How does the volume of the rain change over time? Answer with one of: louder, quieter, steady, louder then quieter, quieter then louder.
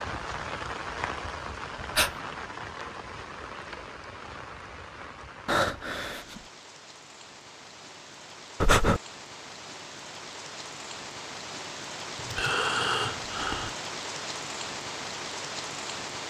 quieter then louder.